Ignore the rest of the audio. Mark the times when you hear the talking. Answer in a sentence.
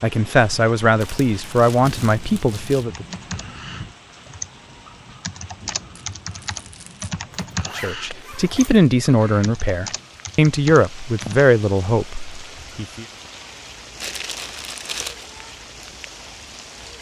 You can hear the talking from 0.0 to 3.0 s and from 7.8 to 13.1 s.